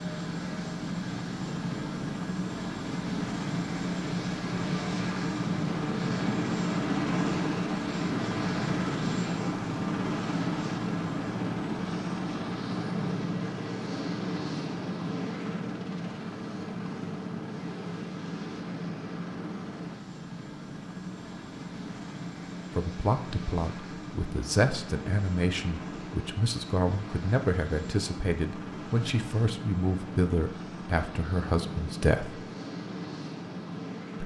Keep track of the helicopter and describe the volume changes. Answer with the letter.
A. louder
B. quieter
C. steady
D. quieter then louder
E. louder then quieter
B.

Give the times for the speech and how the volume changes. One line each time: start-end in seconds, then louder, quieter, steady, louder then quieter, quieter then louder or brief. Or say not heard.
22.8-32.5 steady.